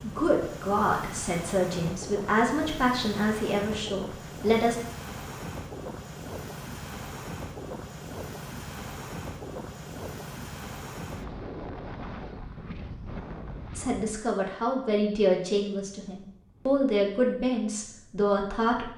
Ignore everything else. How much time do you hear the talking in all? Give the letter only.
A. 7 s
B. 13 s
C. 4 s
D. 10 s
D.